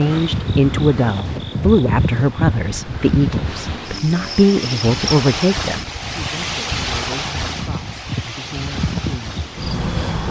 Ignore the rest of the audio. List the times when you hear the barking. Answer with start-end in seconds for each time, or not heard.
not heard.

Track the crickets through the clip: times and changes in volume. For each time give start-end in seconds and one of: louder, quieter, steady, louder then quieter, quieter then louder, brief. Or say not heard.
0.0-10.2 quieter then louder.